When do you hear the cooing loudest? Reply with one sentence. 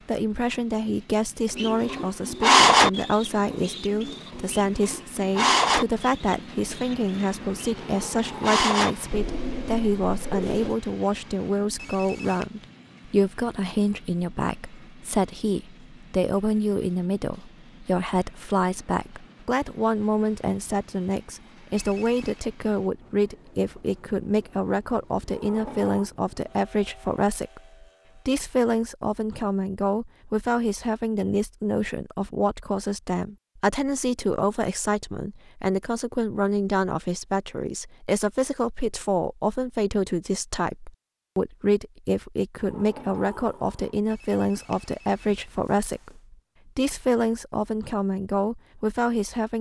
The volume of the cooing peaks at 3 seconds.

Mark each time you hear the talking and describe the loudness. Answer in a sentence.
The talking can be heard from 0.1 to 49.5 s, at a steady volume.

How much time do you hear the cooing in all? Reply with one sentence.
You can hear the cooing for 9 seconds altogether.